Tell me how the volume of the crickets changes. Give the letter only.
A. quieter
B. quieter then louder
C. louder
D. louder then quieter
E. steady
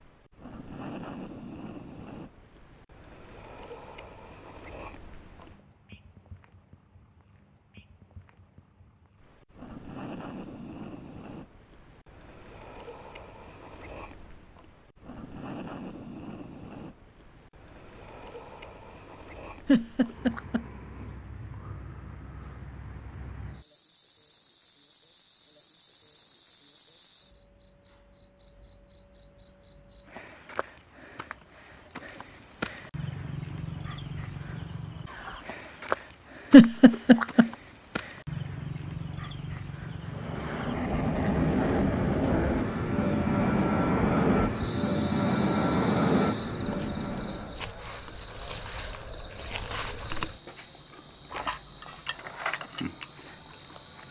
C.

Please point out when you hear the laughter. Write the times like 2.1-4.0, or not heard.
19.6-20.6, 36.5-37.5.